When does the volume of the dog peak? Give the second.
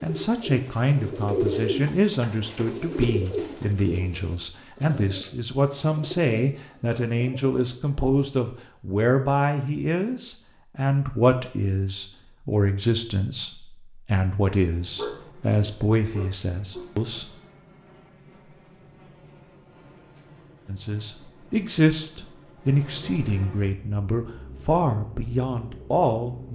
15 s.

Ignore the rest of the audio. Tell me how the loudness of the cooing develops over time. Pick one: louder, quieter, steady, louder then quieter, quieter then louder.
quieter.